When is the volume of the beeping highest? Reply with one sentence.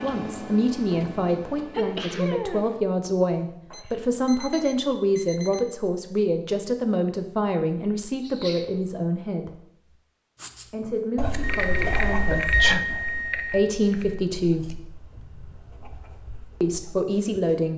The loudest moment of the beeping is at 13 seconds.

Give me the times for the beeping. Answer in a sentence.
The beeping can be heard from 3.7 to 5.6 s and from 11.4 to 14.1 s.